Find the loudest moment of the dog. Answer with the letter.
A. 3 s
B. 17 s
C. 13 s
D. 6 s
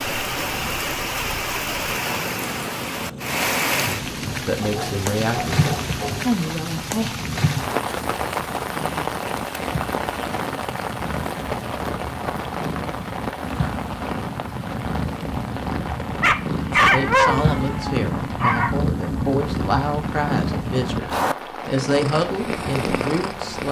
B.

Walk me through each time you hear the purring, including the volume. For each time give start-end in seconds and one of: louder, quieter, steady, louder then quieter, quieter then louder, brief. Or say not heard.
0.1-23.6 louder.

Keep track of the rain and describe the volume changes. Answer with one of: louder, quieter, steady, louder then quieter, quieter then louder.
quieter.